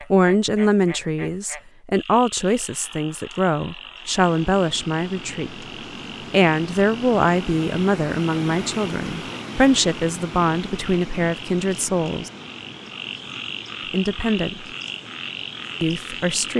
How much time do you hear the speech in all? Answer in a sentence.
You can hear the speech for 13 seconds altogether.